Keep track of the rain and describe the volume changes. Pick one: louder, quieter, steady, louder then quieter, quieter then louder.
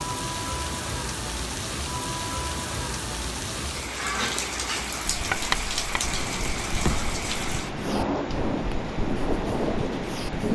steady.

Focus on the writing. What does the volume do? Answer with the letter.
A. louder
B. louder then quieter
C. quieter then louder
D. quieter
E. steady
D.